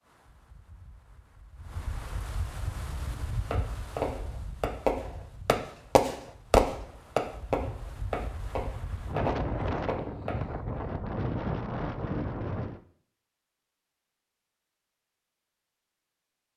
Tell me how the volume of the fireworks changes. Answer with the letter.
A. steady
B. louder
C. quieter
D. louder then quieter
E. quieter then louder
D.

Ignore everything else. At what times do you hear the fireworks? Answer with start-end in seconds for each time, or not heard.
2.7-10.3.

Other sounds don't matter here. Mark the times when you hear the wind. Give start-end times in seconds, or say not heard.
0.0-12.8.